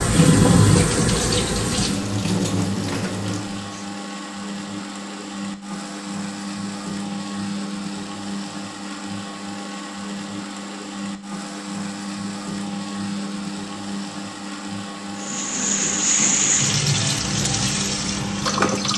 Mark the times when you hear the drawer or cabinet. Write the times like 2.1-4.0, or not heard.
not heard.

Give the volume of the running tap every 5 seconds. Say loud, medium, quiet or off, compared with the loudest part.
loud, off, off, loud.